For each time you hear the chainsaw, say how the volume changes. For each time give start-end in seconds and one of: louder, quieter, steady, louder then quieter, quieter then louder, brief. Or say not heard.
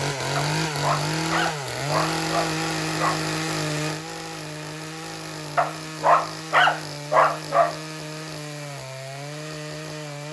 0.0-10.2 quieter.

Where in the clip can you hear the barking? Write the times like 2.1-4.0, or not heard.
0.3-3.2, 5.5-7.8.